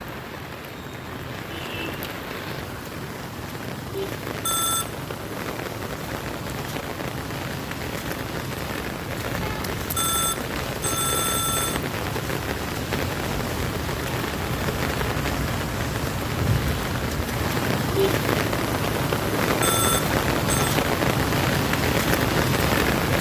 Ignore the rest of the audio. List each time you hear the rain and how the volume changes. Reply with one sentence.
You can hear the rain from 0.0 to 23.1 s, getting louder.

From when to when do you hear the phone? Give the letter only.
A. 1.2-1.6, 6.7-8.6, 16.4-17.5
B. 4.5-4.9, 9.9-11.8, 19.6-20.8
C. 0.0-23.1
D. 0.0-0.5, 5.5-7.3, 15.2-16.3
B.